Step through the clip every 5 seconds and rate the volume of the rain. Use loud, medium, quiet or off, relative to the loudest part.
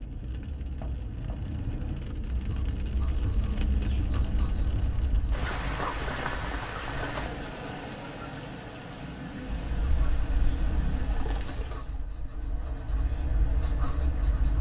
loud, loud, medium.